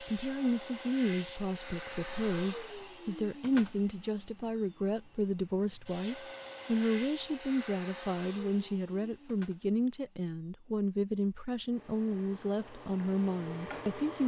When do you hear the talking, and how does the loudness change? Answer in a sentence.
The talking can be heard from 0.0 to 14.2 s, at a steady volume.